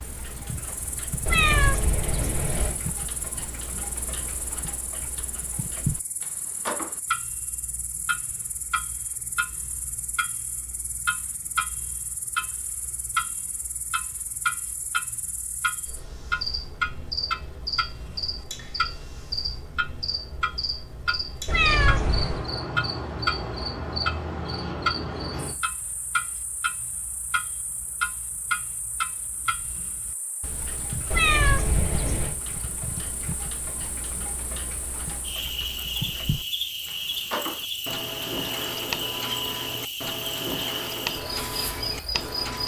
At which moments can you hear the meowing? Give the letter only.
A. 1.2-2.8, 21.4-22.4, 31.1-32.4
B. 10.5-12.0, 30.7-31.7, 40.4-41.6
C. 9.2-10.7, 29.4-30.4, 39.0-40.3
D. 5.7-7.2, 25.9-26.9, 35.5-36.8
A.